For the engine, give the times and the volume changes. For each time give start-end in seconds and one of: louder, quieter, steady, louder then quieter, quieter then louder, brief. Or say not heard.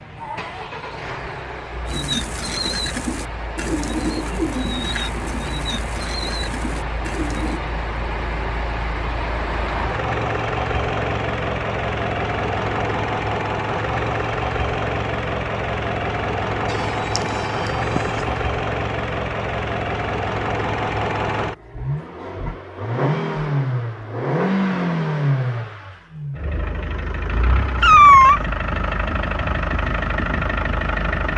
0.0-31.3 louder.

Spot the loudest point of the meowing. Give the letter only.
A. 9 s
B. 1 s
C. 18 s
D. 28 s
D.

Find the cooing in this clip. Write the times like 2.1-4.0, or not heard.
1.9-7.6.